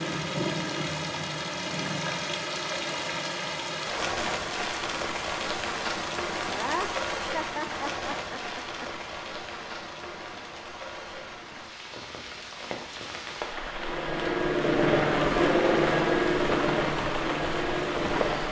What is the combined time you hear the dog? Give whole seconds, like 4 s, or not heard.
not heard.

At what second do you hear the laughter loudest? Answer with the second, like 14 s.
7 s.